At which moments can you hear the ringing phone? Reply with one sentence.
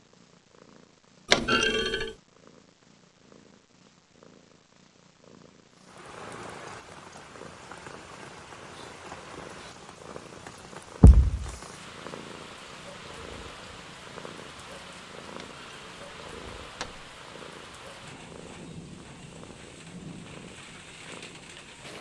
You can't hear the ringing phone here.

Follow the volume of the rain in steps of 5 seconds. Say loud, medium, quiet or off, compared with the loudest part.
off, loud, loud, loud, loud.